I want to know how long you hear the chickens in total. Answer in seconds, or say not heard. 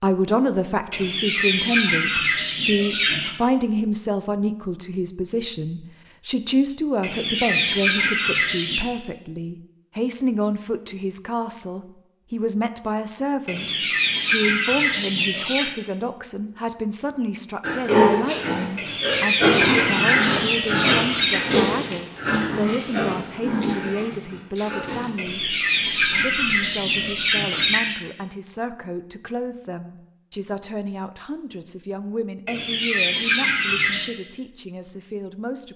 14 s.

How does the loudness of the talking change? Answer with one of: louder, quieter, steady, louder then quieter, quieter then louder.
quieter.